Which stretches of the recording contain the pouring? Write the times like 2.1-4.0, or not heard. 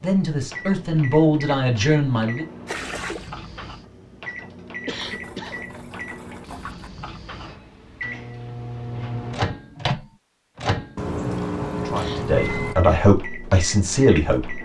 2.6-3.3, 4.9-6.9, 10.9-12.8.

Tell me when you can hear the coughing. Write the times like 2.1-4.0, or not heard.
4.8-5.7, 11.9-12.7.